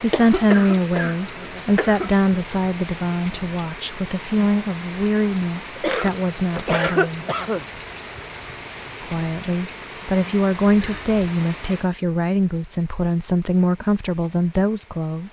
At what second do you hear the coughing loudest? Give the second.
7 s.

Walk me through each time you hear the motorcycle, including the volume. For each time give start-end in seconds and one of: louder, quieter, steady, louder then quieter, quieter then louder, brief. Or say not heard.
not heard.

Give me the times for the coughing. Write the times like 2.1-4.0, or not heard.
0.1-2.1, 5.8-7.7, 10.7-11.2.